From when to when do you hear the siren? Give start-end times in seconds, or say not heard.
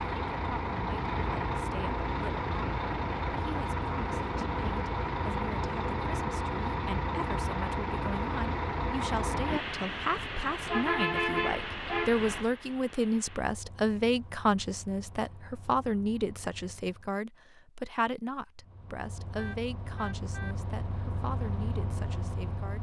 not heard.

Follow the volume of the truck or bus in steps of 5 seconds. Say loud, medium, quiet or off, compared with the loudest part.
loud, loud, loud, quiet, medium.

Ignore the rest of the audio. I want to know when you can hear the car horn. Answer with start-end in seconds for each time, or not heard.
19.4-20.6.